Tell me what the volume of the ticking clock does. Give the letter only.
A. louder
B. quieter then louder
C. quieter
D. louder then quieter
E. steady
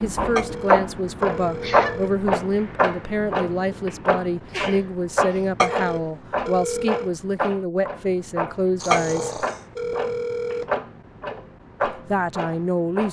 C.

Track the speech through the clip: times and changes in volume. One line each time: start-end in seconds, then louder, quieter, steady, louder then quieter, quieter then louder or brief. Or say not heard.
0.0-9.4 steady
11.8-13.0 brief.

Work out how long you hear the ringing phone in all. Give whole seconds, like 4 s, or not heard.
5 s.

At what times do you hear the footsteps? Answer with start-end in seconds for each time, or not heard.
not heard.